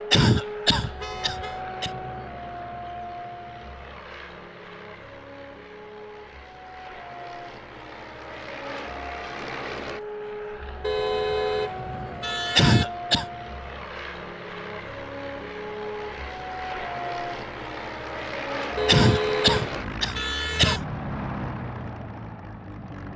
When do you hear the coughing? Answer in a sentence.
You can hear the coughing from 0.1 to 1.9 s, from 12.6 to 13.2 s and from 18.9 to 20.9 s.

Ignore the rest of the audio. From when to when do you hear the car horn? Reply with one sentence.
You can hear the car horn from 0.9 to 1.6 s, from 10.8 to 12.8 s and from 18.8 to 20.8 s.